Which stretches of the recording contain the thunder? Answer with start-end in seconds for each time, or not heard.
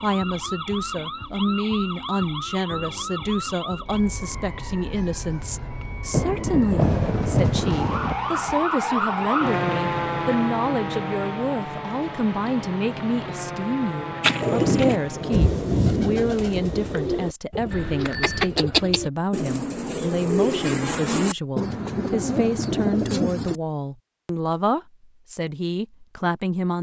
6.1-8.2, 14.4-17.0.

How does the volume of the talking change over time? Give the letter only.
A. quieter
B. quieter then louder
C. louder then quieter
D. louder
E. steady
E.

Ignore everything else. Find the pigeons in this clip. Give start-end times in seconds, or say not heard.
14.2-23.6.